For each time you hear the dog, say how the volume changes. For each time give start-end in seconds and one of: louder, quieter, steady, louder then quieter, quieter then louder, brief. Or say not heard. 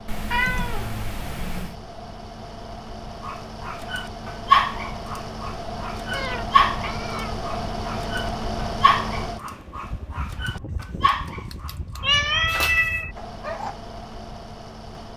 3.2-13.8 quieter.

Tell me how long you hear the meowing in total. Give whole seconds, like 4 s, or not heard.
4 s.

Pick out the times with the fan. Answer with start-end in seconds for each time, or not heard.
0.0-15.1.